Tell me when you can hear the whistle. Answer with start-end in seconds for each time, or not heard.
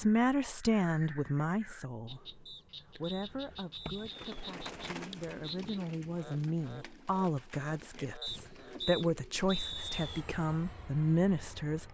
2.5-4.2, 8.2-10.2.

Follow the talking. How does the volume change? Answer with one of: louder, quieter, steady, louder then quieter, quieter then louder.
quieter then louder.